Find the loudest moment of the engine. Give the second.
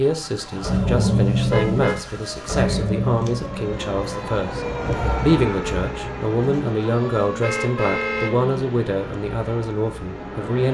1 s.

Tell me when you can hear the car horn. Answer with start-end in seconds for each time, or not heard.
1.5-2.9, 7.4-8.3.